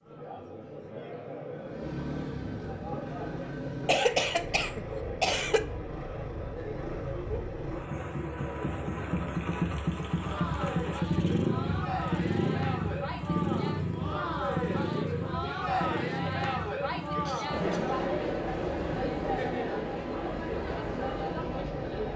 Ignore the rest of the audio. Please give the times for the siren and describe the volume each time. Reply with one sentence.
You can't hear the siren here.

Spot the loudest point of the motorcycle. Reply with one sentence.
The volume of the motorcycle peaks at 11 seconds.